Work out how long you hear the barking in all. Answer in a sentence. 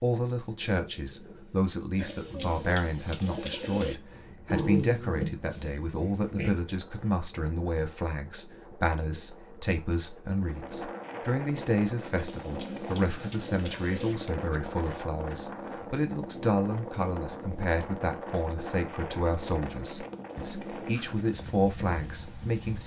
The barking can be heard for 2 seconds in total.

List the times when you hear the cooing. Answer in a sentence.
The cooing can be heard from 1.9 to 4.0 s and from 12.2 to 14.2 s.